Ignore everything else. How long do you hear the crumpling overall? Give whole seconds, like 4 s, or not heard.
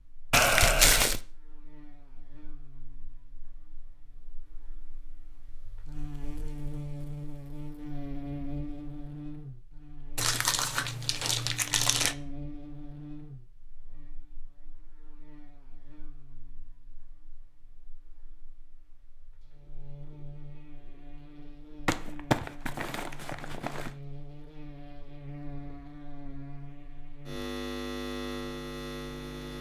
5 s.